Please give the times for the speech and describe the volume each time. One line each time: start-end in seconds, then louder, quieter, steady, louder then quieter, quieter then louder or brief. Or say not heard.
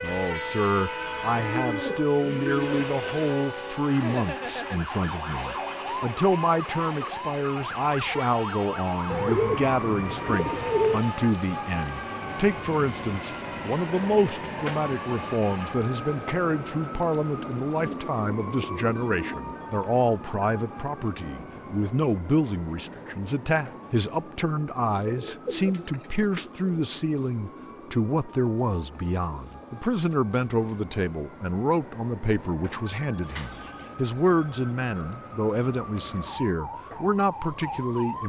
0.0-38.2 steady.